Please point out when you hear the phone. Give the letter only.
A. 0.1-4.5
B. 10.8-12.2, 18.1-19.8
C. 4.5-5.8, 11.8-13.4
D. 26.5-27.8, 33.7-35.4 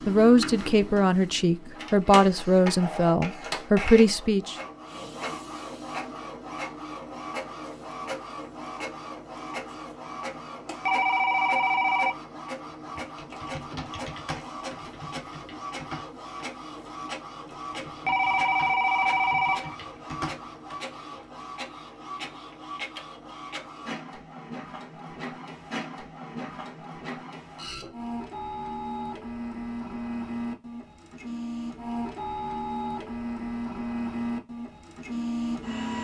B.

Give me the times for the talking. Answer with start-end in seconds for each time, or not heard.
0.1-4.5.